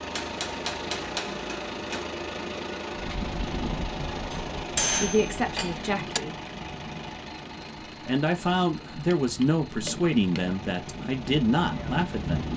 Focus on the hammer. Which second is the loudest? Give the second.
5 s.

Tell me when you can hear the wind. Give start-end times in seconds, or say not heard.
2.9-12.5.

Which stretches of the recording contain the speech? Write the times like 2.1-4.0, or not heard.
5.0-6.3, 8.0-12.5.